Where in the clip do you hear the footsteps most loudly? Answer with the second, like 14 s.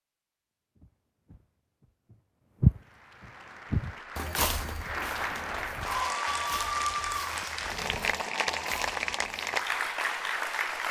3 s.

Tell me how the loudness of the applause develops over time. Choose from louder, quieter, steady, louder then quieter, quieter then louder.
louder.